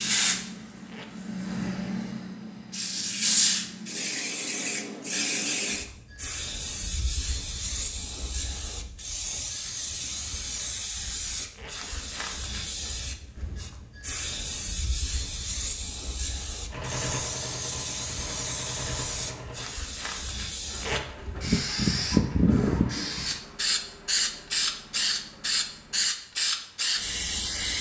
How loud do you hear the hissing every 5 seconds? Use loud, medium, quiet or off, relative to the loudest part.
loud, medium, medium, medium, loud, loud.